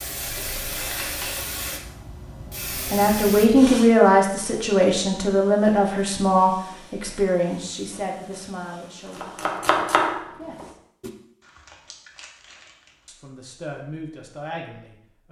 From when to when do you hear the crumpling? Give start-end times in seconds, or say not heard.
0.2-1.4, 11.4-13.1.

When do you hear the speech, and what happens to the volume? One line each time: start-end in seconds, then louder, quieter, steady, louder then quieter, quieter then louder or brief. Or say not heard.
2.9-10.8 quieter
13.1-15.2 brief.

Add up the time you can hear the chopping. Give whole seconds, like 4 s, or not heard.
2 s.